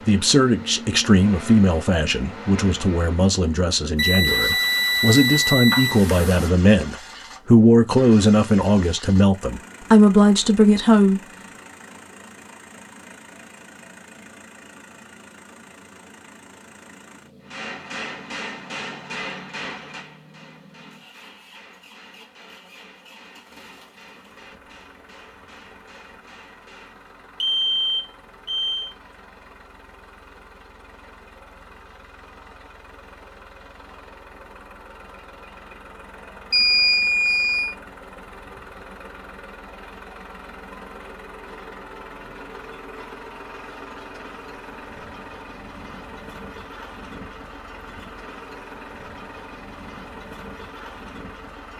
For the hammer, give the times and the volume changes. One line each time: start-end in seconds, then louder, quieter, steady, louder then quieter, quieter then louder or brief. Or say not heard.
17.4-27.1 quieter.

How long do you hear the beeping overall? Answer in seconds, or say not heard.
5 s.